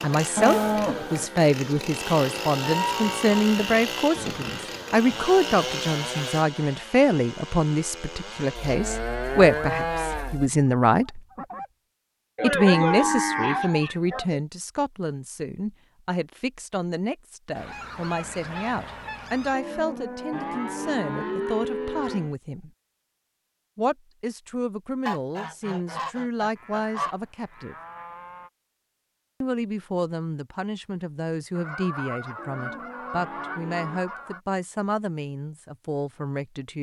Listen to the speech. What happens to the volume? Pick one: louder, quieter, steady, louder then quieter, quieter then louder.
quieter.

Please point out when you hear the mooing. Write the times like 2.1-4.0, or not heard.
0.3-1.3, 8.6-10.5, 12.3-14.4, 19.5-22.4, 26.6-28.5, 32.4-34.0.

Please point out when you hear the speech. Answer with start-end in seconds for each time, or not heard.
0.0-11.2, 12.4-22.7, 23.8-27.8, 29.4-36.7.